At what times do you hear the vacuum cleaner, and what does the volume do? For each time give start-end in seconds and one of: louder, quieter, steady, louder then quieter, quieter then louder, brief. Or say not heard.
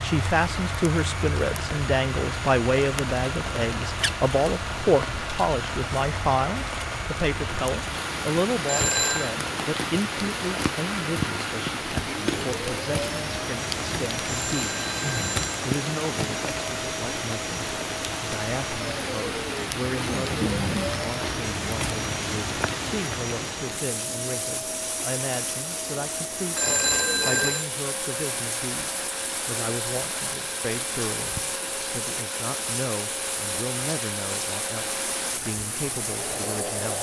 0.0-36.9 steady.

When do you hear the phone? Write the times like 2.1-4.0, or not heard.
8.7-9.3, 14.3-15.6, 26.6-27.6.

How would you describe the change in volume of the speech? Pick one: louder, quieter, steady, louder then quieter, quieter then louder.
quieter.